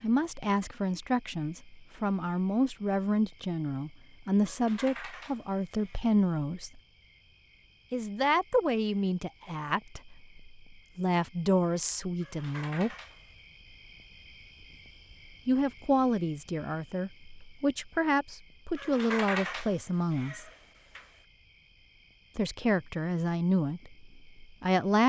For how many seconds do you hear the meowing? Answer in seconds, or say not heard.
5 s.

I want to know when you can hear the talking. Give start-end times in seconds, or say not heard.
0.0-6.8, 7.9-12.9, 15.4-20.4, 22.4-25.0.